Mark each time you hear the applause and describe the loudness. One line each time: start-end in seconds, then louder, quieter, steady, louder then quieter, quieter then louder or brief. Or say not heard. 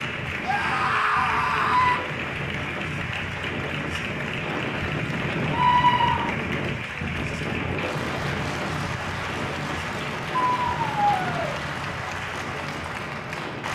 0.0-13.6 steady.